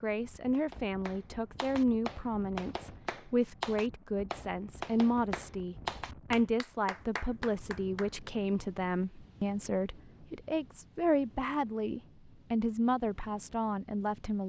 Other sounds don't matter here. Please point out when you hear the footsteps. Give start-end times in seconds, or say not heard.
not heard.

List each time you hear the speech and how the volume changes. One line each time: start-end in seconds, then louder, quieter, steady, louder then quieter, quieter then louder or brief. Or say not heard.
0.0-14.4 steady.